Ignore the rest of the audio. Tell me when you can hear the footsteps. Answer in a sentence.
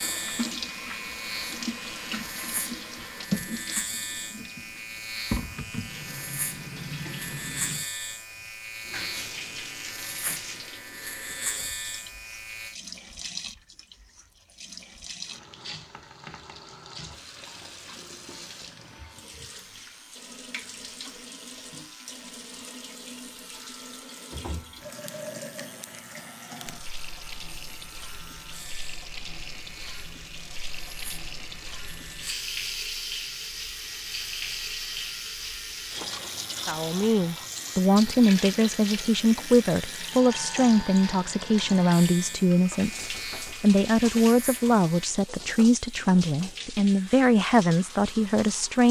You can't hear the footsteps here.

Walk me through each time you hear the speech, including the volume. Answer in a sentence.
The speech can be heard from 36.6 to 48.8 s, at a steady volume.